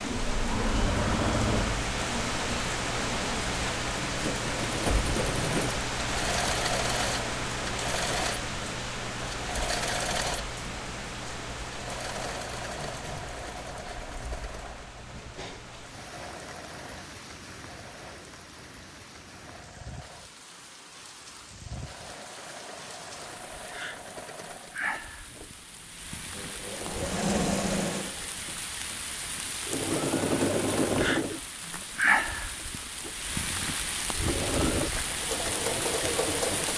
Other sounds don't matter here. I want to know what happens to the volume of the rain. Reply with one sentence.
The loudness of the rain goes down, then up.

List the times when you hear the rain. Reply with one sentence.
You can hear the rain from 0.0 to 36.7 s.